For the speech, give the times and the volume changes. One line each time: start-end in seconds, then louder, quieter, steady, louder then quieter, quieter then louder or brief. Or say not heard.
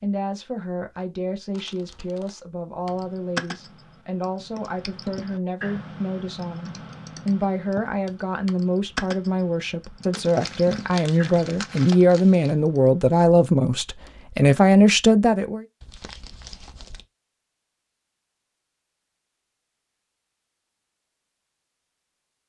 0.0-15.7 louder.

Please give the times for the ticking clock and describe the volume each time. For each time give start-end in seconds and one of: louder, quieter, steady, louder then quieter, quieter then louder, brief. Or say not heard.
not heard.